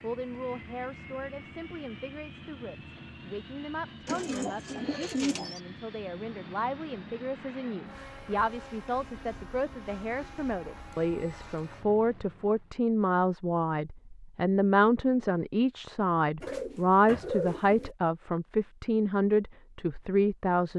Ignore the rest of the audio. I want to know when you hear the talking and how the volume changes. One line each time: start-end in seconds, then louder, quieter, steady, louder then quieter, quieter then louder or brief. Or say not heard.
0.0-20.7 louder.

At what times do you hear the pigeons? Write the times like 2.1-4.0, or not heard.
4.0-5.6, 16.4-17.9.